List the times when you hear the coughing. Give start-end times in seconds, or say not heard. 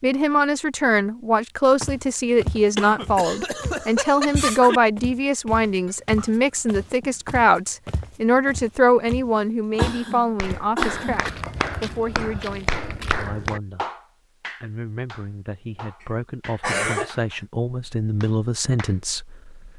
2.8-4.8, 9.8-11.3, 16.0-17.4.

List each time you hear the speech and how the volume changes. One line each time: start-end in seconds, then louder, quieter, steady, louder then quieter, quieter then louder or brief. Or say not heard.
0.0-13.8 quieter
14.6-19.7 louder.